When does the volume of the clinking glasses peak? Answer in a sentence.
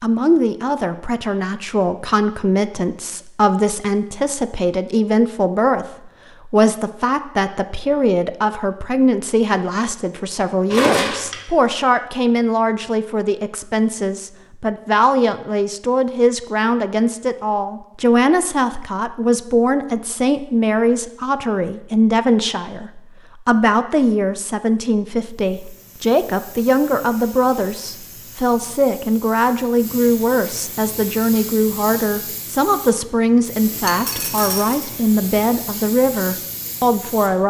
The loudest moment of the clinking glasses is at 11 seconds.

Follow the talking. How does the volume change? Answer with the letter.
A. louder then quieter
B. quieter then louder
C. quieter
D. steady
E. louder
D.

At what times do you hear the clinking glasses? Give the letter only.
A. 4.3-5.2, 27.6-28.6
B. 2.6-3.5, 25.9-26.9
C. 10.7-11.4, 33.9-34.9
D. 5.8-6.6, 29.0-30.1
C.